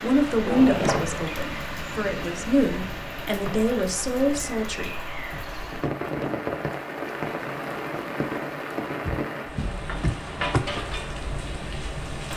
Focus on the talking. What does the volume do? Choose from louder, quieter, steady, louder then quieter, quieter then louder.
quieter then louder.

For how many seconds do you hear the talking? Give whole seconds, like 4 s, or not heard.
5 s.